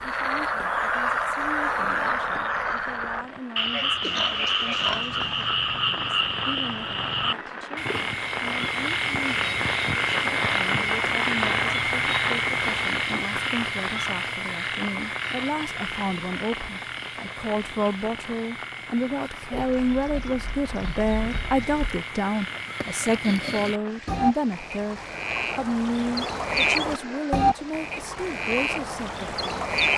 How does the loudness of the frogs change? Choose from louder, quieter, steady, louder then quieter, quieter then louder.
quieter then louder.